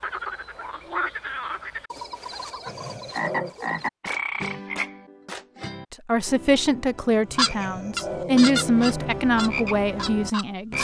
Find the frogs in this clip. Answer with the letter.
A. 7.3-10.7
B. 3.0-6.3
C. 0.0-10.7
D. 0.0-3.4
C.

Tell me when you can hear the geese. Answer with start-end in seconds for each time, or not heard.
7.3-10.7.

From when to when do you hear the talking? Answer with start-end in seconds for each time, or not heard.
5.9-10.7.